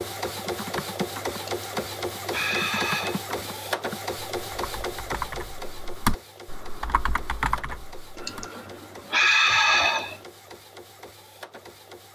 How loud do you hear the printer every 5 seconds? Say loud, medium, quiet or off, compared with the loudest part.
loud, medium, quiet.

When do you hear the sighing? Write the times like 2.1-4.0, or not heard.
1.4-3.2, 8.2-10.2.